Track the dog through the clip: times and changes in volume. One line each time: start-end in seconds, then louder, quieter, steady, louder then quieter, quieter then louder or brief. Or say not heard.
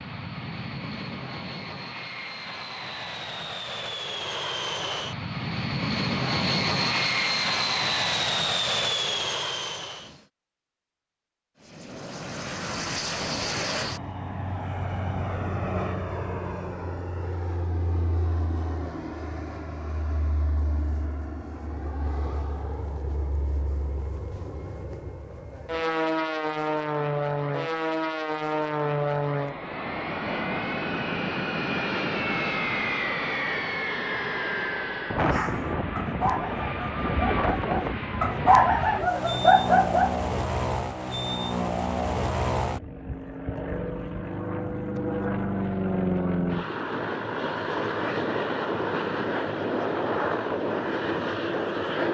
35.2-40.2 quieter then louder.